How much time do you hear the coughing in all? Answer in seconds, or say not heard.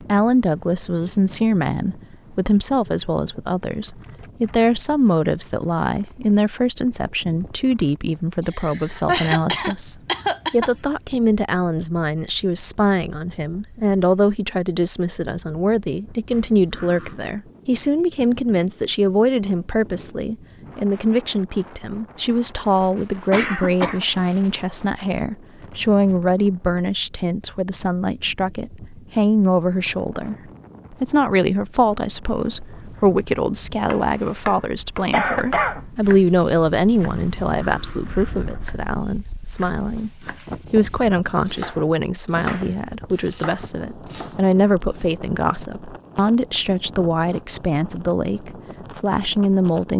4 s.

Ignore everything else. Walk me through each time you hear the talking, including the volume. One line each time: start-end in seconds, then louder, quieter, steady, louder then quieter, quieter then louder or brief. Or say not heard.
0.0-49.9 steady.